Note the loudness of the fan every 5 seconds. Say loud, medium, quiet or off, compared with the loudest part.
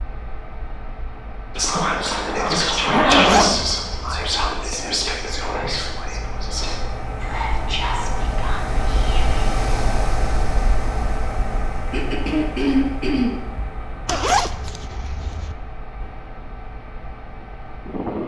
medium, loud, loud, medium.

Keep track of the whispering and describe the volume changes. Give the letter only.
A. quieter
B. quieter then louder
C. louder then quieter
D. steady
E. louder
A.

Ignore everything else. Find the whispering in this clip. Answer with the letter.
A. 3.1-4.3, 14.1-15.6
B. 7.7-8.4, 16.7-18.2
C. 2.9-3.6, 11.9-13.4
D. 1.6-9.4
D.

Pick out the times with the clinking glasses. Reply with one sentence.
The clinking glasses can't be heard in this clip.